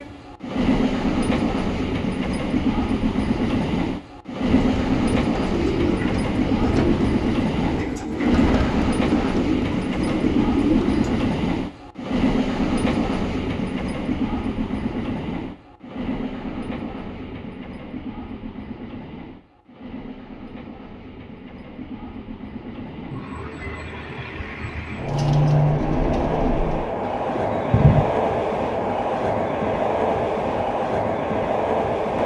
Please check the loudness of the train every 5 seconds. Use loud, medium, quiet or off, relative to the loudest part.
loud, loud, loud, medium, quiet, loud, loud.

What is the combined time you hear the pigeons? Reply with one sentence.
The pigeons can be heard for 10 seconds in total.